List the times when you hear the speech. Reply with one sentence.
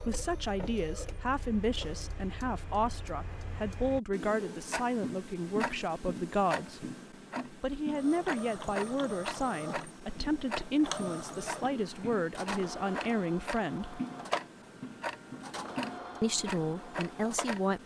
The speech can be heard from 0.1 to 6.9 s, from 7.5 to 14.0 s and from 16.2 to 17.8 s.